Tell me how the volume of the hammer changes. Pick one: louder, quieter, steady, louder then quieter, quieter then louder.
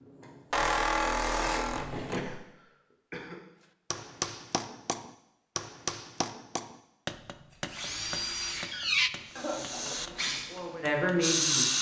quieter.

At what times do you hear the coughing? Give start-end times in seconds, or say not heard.
2.1-3.4, 9.3-9.9.